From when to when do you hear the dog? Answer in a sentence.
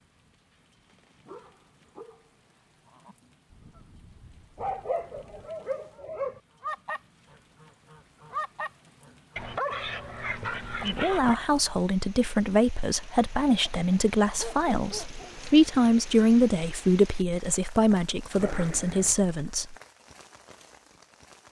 You can hear the dog from 0.5 to 2.3 s, from 4.5 to 6.4 s, from 9.3 to 11.3 s, from 13.7 to 15.3 s and from 18.4 to 19.2 s.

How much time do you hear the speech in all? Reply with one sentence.
You can hear the speech for 9 seconds altogether.